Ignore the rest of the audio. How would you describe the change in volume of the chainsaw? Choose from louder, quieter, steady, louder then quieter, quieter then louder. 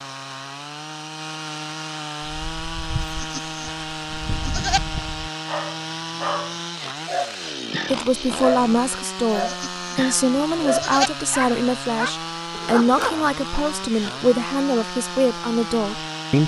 steady.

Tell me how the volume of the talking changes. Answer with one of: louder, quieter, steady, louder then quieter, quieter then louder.
steady.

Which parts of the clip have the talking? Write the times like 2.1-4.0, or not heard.
7.8-16.4.